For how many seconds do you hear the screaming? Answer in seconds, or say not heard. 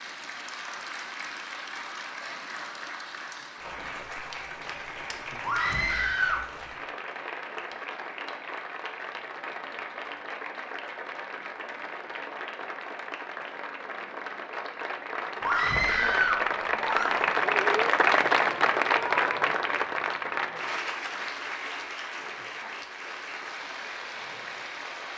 3 s.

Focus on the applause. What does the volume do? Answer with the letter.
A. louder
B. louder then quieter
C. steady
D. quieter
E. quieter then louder
B.